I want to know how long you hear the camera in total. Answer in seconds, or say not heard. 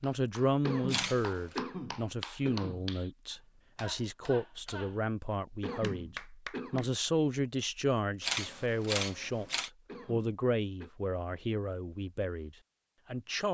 2 s.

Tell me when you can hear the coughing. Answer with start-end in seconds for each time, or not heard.
0.6-2.9, 5.6-6.9, 9.8-10.9.